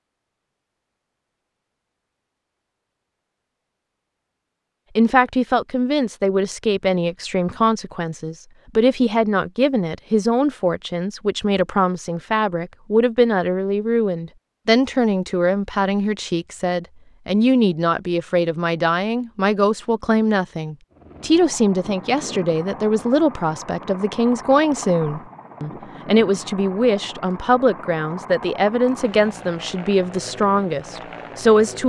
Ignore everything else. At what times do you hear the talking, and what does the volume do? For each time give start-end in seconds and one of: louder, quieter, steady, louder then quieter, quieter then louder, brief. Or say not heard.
5.0-31.8 steady.